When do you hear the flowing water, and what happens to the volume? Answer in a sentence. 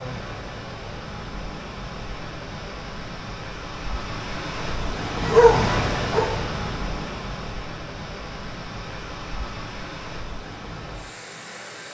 The flowing water can be heard from 0.0 to 11.8 s, getting louder then quieter.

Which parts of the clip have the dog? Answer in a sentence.
You can hear the dog from 5.2 to 6.3 s.